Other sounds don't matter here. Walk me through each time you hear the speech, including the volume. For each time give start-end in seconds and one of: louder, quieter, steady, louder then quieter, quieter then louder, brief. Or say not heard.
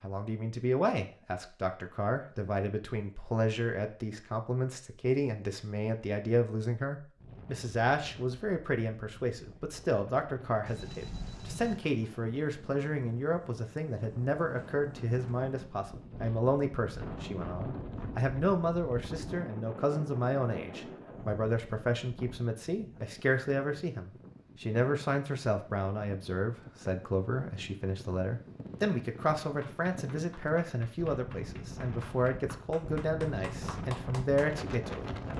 0.0-35.1 steady.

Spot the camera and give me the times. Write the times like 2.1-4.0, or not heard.
10.7-11.8.